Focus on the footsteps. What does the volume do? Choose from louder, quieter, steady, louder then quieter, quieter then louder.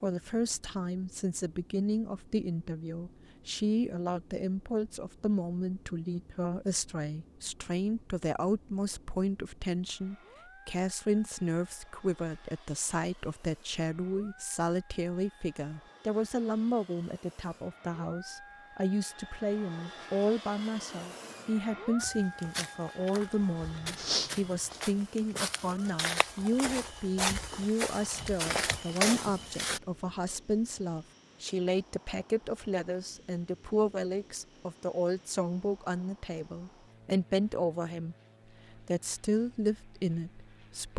louder.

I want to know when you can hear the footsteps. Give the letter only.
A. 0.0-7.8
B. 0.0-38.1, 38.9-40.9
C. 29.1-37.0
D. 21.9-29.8
D.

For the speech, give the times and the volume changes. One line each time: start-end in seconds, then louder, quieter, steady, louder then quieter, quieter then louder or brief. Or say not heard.
0.0-38.1 steady
38.9-40.9 brief.